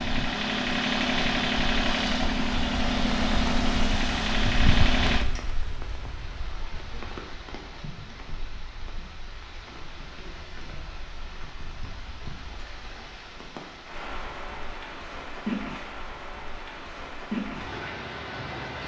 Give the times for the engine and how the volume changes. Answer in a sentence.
The engine can be heard from 0.0 to 5.2 s, at a steady volume.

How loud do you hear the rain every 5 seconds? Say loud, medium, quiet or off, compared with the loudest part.
loud, medium, medium, loud.